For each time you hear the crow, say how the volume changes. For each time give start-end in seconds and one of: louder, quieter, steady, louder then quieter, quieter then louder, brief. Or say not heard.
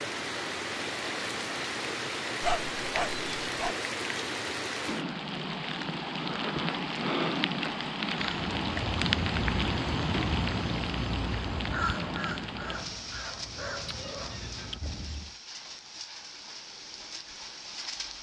8.2-15.3 quieter.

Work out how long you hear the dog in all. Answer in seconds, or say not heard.
4 s.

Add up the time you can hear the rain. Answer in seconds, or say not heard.
18 s.